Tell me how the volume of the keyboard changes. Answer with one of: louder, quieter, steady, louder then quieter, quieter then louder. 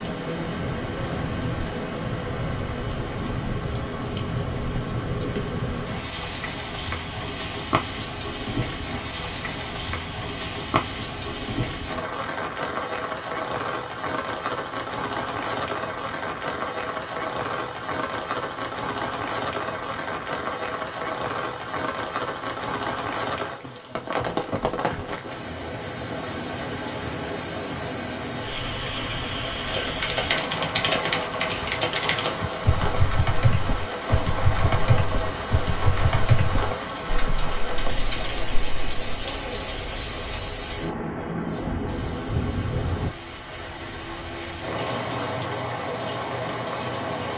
quieter.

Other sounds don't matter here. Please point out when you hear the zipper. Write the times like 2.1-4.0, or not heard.
not heard.